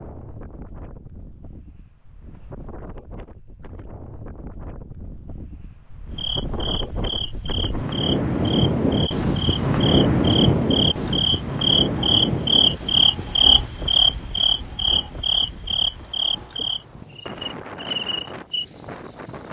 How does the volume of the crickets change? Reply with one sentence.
The loudness of the crickets goes up, then down.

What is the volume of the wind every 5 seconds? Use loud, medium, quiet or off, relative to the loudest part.
quiet, loud, loud, quiet.